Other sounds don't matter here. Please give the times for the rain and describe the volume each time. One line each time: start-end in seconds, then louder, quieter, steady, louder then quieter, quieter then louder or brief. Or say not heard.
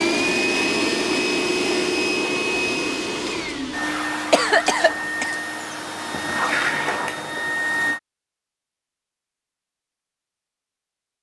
not heard.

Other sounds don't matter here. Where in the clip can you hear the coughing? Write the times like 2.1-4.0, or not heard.
3.4-5.3.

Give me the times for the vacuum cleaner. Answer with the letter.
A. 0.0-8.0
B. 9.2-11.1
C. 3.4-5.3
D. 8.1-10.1
A.